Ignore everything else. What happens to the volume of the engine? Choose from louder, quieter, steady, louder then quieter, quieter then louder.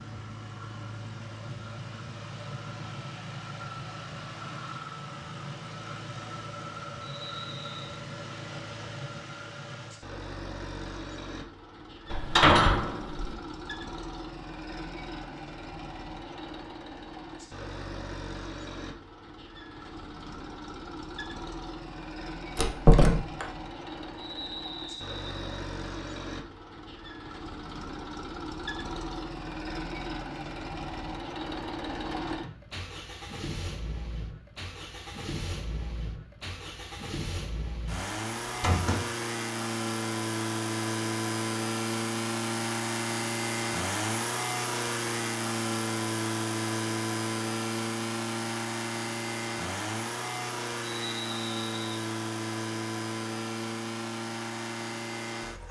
louder.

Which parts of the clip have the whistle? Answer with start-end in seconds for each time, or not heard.
7.0-7.8, 24.1-25.6, 50.8-51.9.